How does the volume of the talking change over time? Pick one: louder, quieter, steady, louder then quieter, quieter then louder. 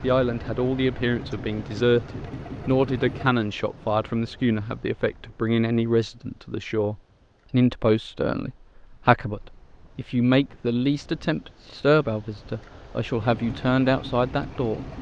steady.